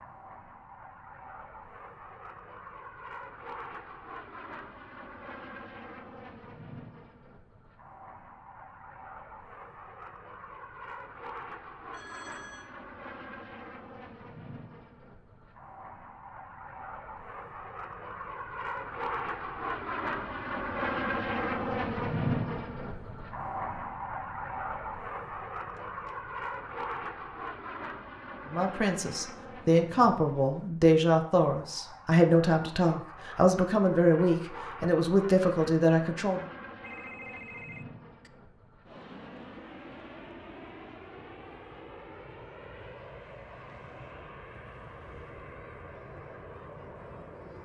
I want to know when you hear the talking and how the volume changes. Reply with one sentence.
The talking can be heard from 28.5 to 36.4 s, at a steady volume.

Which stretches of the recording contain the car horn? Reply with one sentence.
You can't hear the car horn here.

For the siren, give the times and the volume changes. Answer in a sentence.
You can't hear the siren here.